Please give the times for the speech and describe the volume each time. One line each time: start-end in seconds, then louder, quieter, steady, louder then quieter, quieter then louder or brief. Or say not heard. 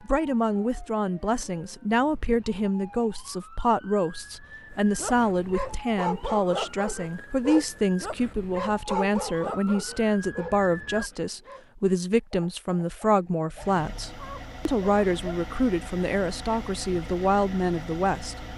0.0-18.4 steady.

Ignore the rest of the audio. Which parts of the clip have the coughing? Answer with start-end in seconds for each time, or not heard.
not heard.